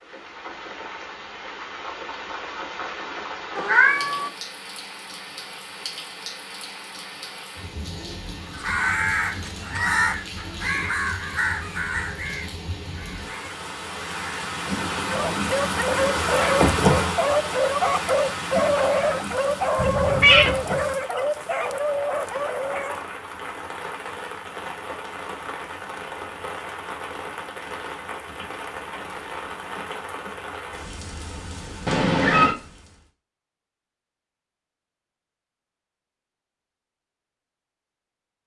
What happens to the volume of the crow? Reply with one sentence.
The loudness of the crow goes down.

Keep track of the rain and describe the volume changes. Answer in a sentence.
The volume of the rain goes up, then down.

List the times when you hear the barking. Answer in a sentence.
You can hear the barking from 15.1 to 23.0 s.